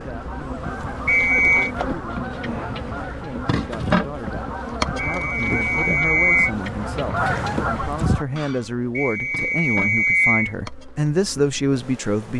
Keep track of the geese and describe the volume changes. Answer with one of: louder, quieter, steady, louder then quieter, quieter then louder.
louder.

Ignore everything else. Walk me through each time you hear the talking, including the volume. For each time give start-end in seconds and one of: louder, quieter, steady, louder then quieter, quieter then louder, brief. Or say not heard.
0.0-12.3 louder.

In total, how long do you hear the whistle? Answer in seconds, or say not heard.
4 s.